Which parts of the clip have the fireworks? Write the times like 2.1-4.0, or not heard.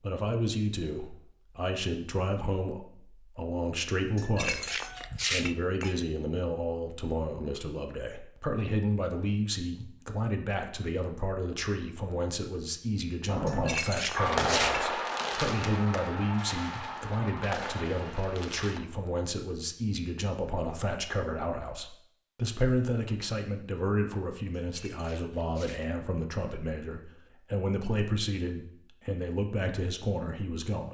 13.2-18.8.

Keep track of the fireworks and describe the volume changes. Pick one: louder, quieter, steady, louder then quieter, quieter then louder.
quieter.